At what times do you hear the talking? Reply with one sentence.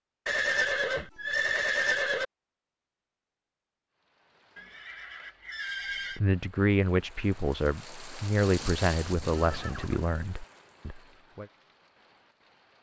You can hear the talking from 6.2 to 11.4 s.